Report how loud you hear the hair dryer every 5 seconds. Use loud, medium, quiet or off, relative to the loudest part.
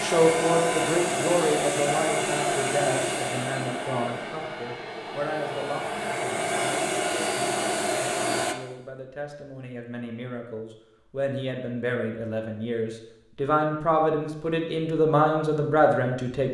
loud, loud, off, off.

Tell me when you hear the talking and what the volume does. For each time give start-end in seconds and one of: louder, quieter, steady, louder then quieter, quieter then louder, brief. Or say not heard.
0.0-16.4 quieter then louder.